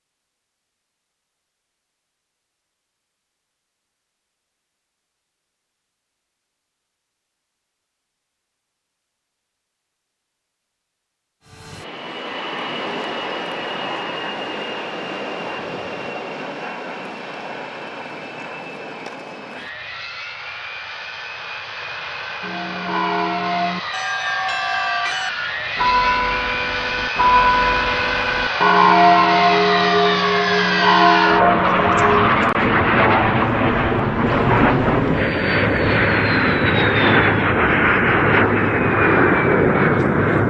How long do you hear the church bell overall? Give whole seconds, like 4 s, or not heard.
10 s.